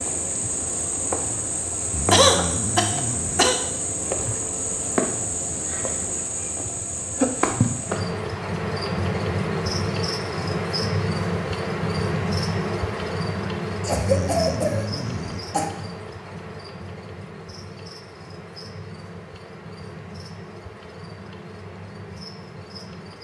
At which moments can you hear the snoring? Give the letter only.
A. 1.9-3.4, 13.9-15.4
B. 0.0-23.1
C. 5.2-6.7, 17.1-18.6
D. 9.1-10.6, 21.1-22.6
A.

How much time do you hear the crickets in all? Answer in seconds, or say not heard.
23 s.